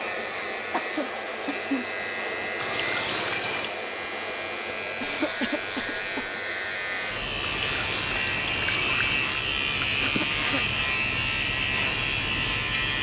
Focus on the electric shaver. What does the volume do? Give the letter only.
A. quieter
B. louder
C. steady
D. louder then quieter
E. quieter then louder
B.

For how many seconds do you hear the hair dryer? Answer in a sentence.
You can hear the hair dryer for 13 seconds altogether.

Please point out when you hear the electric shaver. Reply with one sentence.
The electric shaver can be heard from 0.0 to 12.9 s.